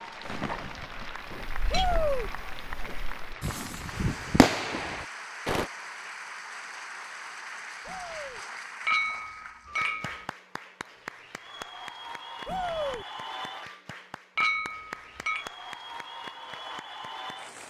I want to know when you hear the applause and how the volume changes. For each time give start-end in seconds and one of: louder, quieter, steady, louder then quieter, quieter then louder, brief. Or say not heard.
0.0-17.6 steady.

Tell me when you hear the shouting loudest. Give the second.
2 s.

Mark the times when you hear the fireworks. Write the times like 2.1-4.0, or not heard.
0.2-5.7.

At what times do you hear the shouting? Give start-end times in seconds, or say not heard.
1.7-2.3, 7.8-8.4, 12.4-13.1.